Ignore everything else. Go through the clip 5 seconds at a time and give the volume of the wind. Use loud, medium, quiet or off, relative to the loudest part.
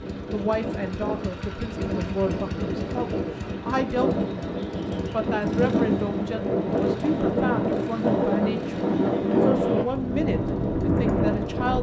medium, loud, loud.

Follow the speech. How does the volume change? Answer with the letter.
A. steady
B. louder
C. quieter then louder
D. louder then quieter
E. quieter
A.